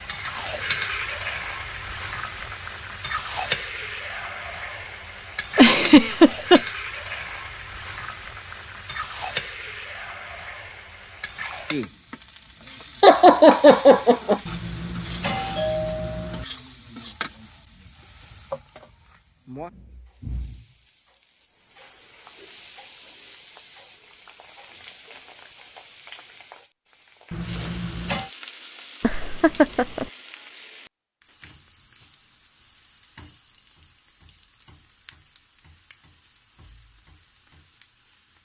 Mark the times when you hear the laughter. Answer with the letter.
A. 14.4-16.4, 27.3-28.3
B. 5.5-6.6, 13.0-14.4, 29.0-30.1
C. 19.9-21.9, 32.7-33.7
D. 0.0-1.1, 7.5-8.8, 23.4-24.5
B.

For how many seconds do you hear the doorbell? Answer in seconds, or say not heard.
3 s.